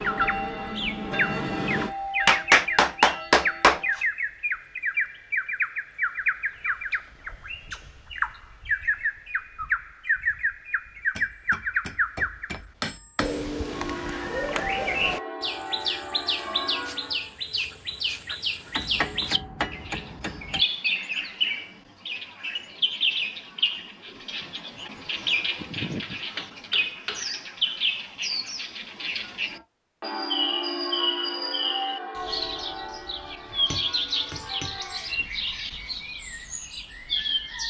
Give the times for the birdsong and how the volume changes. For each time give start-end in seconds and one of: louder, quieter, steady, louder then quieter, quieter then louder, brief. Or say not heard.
0.0-37.6 steady.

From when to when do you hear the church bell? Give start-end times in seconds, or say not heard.
0.0-4.0, 13.6-17.4, 29.5-35.2.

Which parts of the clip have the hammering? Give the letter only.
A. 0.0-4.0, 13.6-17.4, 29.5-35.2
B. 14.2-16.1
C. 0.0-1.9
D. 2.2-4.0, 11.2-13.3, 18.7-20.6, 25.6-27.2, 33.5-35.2
D.